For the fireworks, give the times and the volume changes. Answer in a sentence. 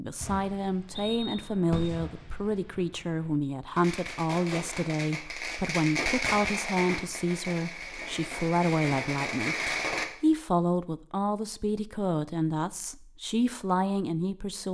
You can hear the fireworks from 0.2 to 10.1 s, getting louder.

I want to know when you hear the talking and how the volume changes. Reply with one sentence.
The talking can be heard from 0.0 to 14.6 s, at a steady volume.